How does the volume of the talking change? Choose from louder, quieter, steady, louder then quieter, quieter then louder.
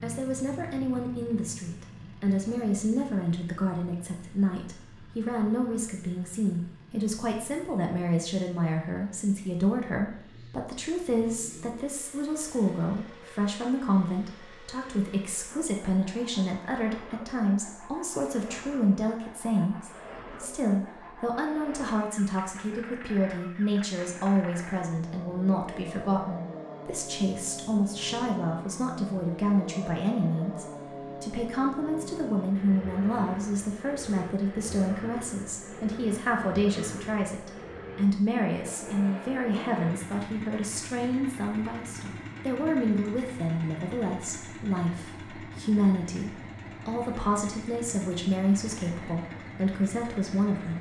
steady.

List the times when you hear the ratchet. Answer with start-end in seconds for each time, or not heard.
not heard.